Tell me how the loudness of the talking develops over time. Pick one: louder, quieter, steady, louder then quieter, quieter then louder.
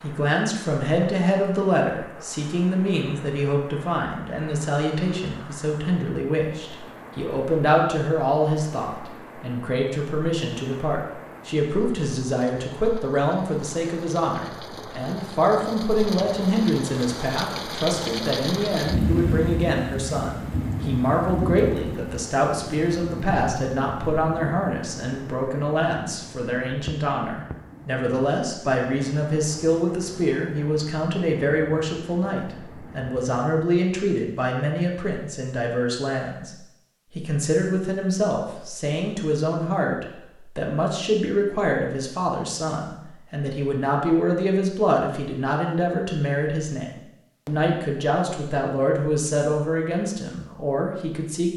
steady.